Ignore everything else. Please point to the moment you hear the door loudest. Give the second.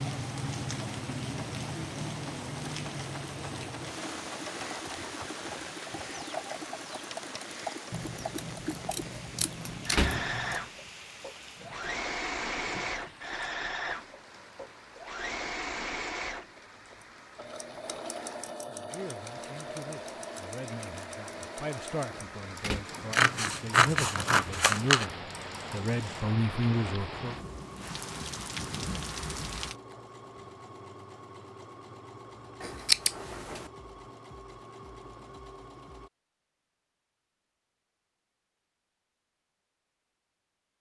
10 s.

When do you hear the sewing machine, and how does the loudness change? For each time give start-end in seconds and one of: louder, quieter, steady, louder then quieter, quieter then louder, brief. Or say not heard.
0.0-36.1 louder then quieter.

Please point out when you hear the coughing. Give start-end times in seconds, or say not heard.
not heard.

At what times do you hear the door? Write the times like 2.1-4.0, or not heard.
9.4-10.2, 22.1-22.9.